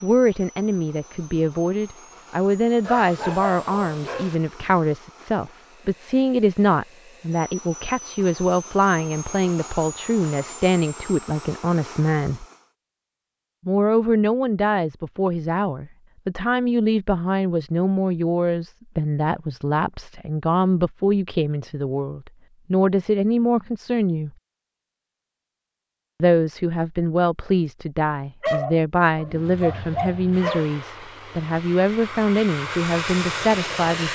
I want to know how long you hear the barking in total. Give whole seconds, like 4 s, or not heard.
4 s.